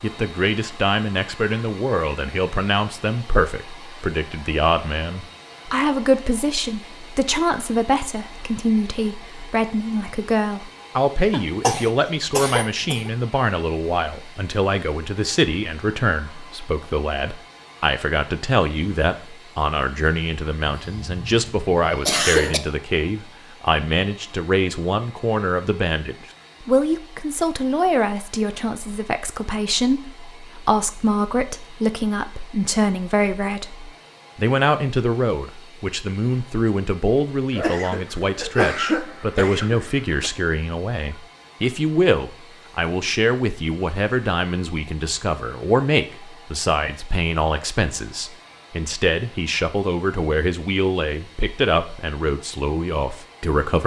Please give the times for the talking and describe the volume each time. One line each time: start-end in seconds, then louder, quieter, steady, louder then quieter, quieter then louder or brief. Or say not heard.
0.0-53.8 steady.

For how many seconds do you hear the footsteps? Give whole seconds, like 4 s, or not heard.
not heard.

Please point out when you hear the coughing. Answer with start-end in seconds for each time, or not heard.
11.3-13.1, 20.6-22.6, 37.5-40.3.